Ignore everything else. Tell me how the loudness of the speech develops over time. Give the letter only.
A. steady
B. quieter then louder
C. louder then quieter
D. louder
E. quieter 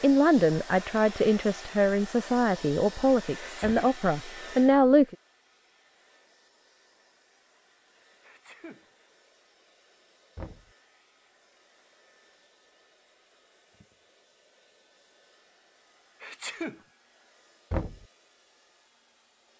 A.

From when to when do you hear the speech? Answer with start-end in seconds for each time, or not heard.
0.0-5.2.